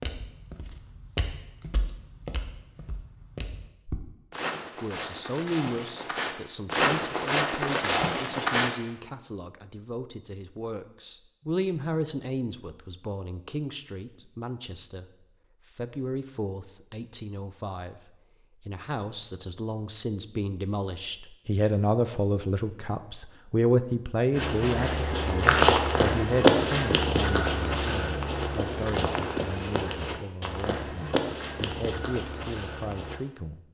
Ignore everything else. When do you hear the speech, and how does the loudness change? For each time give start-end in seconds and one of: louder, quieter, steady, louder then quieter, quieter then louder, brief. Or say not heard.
4.8-33.6 louder then quieter.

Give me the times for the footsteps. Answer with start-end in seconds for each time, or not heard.
0.0-8.7, 24.4-33.2.